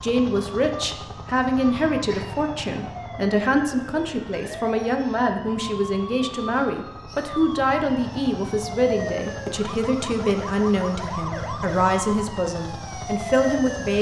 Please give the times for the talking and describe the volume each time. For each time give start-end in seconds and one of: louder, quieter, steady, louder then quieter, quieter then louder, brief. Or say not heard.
0.0-13.9 steady.